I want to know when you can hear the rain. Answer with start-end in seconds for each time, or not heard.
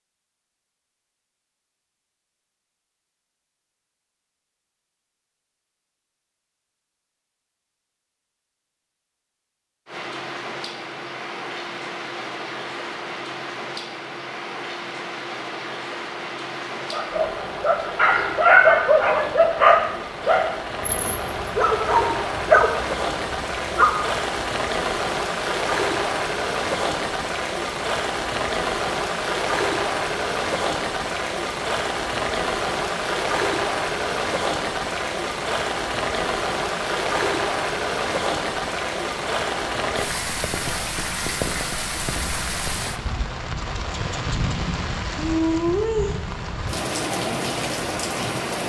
9.8-48.6.